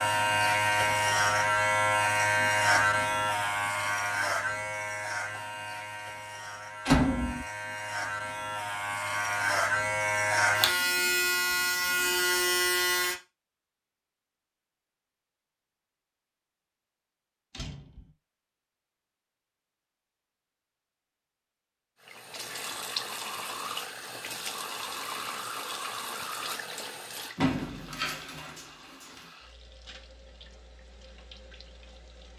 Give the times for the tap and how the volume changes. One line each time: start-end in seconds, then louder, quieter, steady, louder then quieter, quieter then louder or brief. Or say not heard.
22.0-32.3 quieter.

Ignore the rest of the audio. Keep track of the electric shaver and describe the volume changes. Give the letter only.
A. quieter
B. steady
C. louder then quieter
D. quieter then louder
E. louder
D.